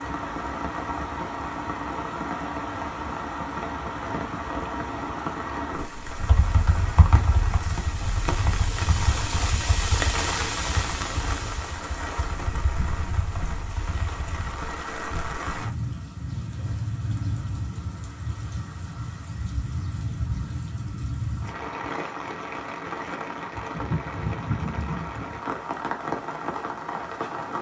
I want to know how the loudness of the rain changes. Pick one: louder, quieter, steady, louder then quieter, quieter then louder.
steady.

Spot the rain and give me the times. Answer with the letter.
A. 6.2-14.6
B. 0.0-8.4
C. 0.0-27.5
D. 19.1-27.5
C.